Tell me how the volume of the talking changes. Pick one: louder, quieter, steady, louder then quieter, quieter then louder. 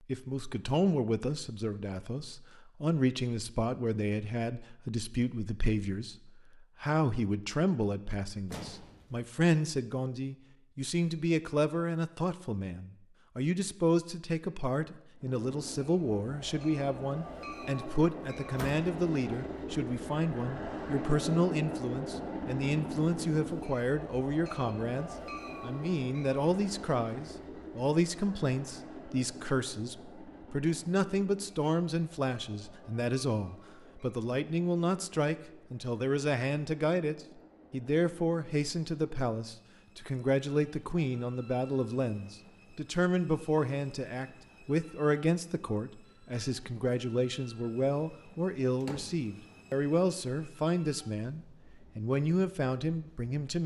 steady.